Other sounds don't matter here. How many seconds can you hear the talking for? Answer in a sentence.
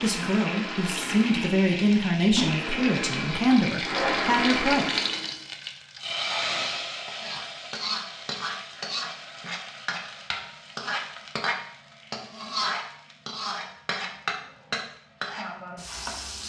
You can hear the talking for 5 seconds altogether.